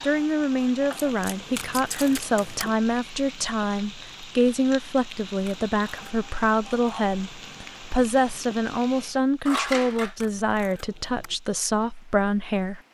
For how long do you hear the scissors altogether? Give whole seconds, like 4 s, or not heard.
2 s.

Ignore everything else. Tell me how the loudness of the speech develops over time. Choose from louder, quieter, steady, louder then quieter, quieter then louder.
steady.